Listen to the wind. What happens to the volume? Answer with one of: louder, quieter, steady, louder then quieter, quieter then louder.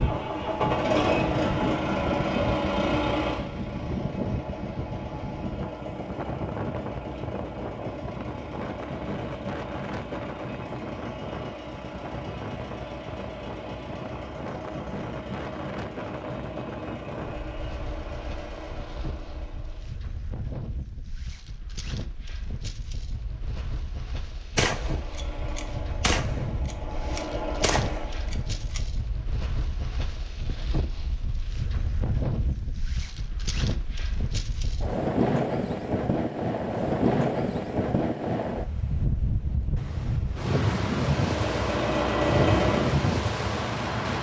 quieter then louder.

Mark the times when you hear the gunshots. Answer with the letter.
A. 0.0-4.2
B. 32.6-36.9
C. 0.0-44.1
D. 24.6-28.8
D.